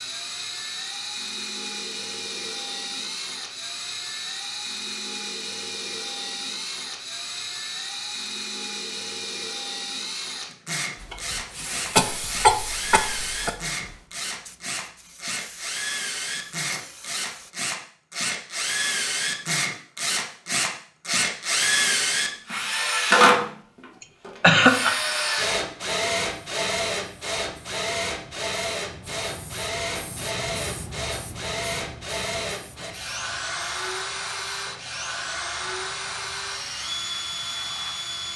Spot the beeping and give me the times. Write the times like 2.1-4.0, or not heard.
not heard.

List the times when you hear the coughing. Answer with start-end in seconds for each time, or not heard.
11.9-13.5, 24.4-24.9.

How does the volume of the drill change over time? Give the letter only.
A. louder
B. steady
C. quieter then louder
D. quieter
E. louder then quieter
E.